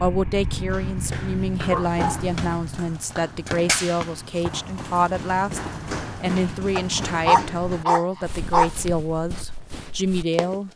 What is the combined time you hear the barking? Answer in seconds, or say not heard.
3 s.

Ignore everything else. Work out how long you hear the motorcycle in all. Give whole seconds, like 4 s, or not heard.
3 s.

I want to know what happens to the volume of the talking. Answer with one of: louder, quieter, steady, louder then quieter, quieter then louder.
steady.